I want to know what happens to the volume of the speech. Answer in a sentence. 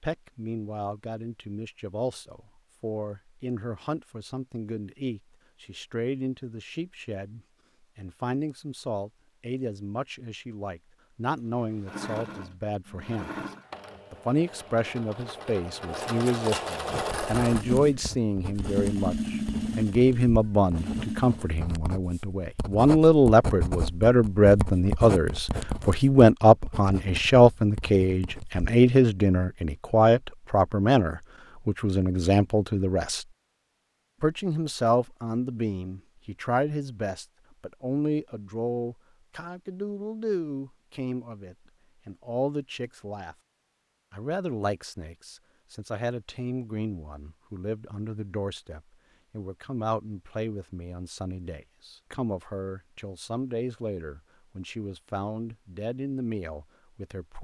The loudness of the speech goes up, then down.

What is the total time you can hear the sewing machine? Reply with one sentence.
The sewing machine can be heard for 10 seconds in total.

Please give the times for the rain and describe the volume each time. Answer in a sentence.
The rain can't be heard in this clip.